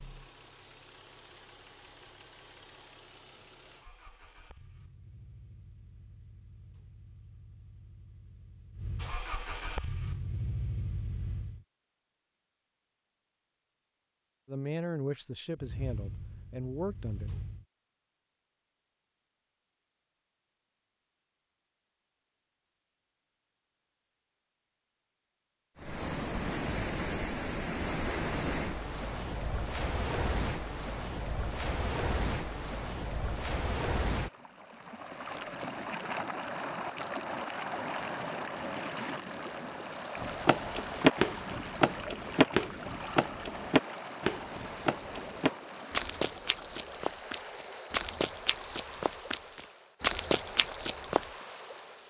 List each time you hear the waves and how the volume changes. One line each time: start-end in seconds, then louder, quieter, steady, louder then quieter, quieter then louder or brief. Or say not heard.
25.8-52.0 quieter.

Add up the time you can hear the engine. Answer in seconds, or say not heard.
14 s.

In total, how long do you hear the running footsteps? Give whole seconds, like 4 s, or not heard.
11 s.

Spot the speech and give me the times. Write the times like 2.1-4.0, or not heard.
14.4-17.3.